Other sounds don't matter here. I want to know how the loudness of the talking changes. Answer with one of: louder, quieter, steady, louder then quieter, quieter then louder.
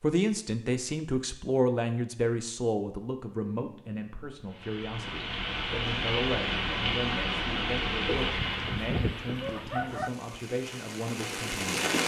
quieter.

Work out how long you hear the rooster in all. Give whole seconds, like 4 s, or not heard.
2 s.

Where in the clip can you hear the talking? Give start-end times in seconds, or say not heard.
0.0-12.0.